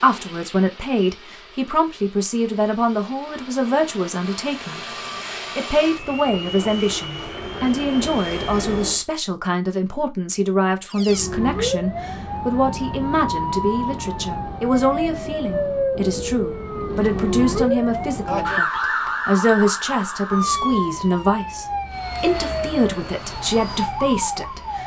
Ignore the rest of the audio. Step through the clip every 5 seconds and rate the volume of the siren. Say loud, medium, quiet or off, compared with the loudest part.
off, off, loud, loud, loud.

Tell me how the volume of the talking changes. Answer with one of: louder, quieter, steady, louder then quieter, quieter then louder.
steady.